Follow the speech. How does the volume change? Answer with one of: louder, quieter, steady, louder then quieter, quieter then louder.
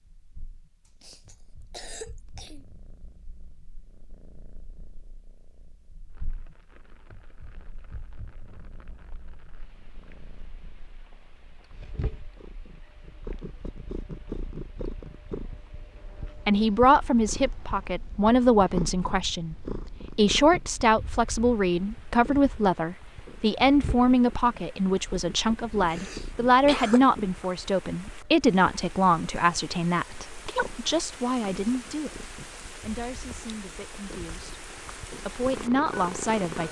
quieter.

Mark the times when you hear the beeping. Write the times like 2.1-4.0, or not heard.
not heard.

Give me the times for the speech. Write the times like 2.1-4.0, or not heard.
16.4-36.6.